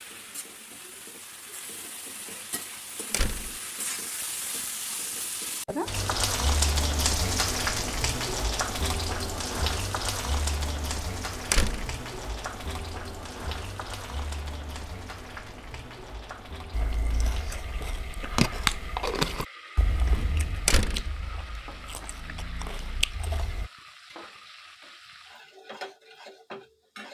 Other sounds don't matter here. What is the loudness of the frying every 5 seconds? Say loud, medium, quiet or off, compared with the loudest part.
medium, loud, medium, quiet, quiet, quiet.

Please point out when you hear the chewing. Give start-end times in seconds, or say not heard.
16.7-23.7.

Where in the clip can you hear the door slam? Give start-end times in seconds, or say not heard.
3.1-3.5, 11.5-11.9, 20.6-21.1.